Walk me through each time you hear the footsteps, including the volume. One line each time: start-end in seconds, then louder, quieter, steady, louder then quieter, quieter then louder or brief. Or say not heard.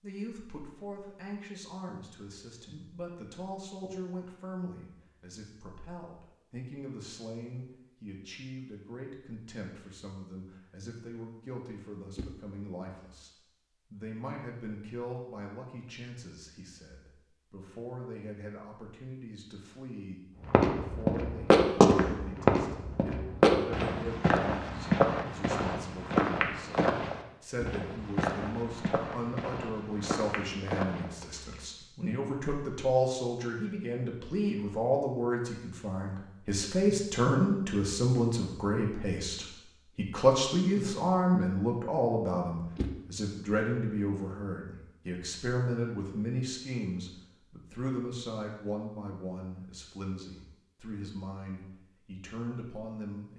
20.4-31.9 quieter.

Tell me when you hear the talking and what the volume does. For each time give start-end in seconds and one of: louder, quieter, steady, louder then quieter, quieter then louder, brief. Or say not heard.
0.0-53.3 louder then quieter.